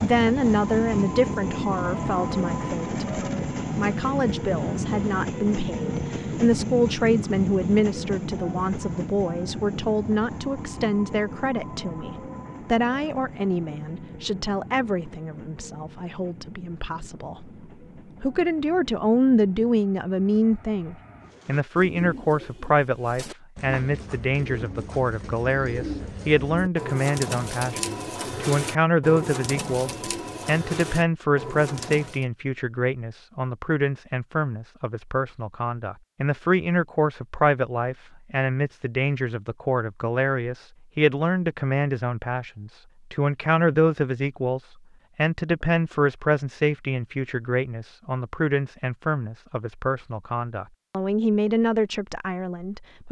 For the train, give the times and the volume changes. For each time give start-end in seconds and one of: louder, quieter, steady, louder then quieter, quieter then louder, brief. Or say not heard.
0.0-21.4 quieter.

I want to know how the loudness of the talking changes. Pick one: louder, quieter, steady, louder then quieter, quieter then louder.
steady.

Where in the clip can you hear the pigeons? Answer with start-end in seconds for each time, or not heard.
21.2-32.2.